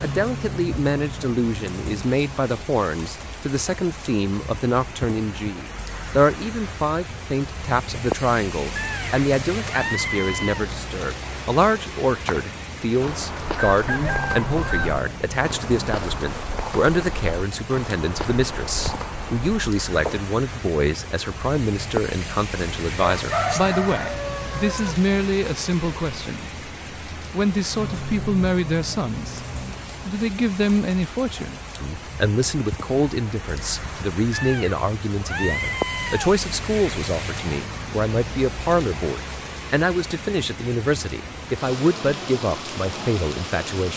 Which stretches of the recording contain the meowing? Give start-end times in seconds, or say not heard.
8.8-10.7, 34.3-36.3.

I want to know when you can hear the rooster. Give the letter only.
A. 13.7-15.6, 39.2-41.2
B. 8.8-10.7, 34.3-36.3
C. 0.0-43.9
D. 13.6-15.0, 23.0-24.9
D.